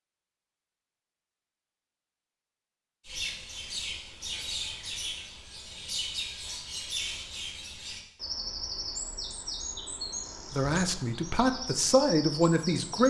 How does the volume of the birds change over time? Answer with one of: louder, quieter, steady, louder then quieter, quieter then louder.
steady.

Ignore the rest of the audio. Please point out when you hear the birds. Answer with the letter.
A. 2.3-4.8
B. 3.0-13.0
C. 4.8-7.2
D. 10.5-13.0
B.